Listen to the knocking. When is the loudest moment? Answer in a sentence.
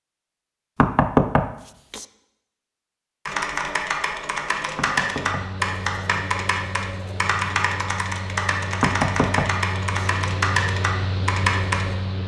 The volume of the knocking peaks at 1 second.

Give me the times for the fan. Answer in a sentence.
The fan can be heard from 5.2 to 12.2 s.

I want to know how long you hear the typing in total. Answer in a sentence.
The typing can be heard for 9 seconds in total.